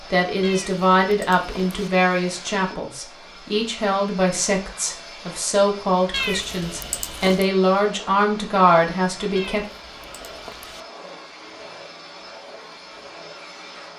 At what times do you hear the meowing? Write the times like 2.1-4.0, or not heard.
0.4-1.9, 6.1-7.5, 9.3-10.8.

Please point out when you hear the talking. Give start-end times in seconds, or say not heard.
0.0-9.7.